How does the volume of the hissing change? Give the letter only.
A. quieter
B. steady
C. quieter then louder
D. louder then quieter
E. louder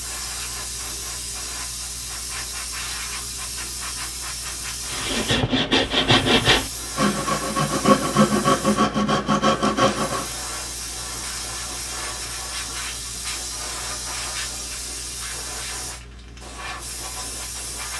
B.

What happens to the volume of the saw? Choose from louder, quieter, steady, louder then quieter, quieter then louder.
steady.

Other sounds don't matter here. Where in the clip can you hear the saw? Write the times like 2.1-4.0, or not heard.
4.9-10.3.